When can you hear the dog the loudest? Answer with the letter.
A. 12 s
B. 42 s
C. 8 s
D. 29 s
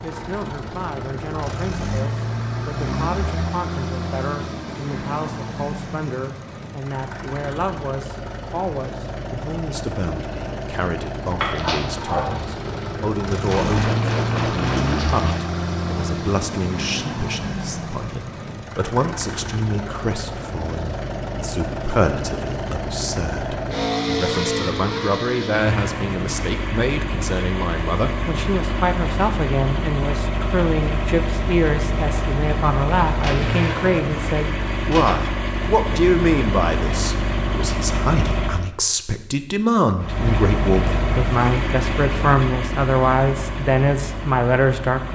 A.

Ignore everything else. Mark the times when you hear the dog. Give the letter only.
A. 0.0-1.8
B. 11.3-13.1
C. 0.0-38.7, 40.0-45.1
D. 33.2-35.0
B.